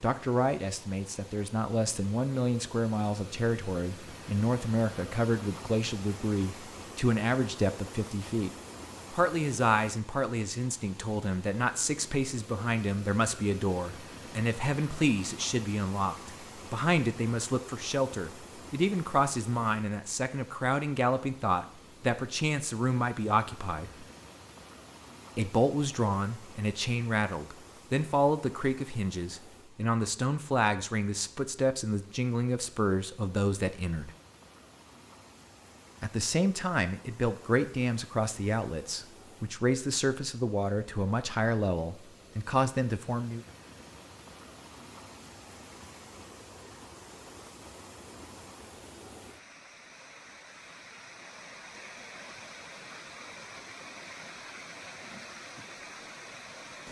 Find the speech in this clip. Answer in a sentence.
The speech can be heard from 0.0 to 8.5 s, from 9.1 to 24.1 s, from 25.4 to 34.1 s and from 36.0 to 43.4 s.